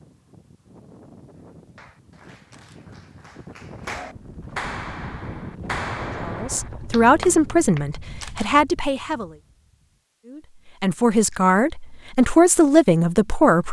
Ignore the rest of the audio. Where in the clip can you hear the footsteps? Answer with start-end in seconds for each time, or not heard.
not heard.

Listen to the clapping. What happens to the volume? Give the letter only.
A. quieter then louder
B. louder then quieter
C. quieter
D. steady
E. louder
E.